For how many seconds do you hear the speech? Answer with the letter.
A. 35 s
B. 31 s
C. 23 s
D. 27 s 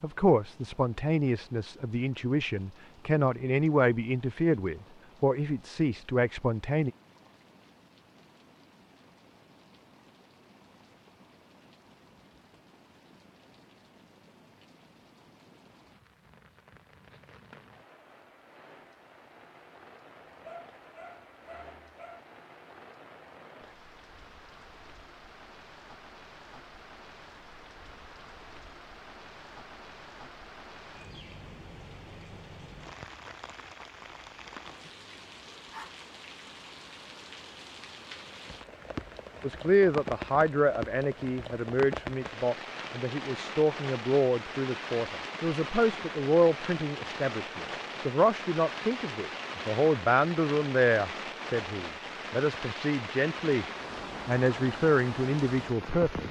C.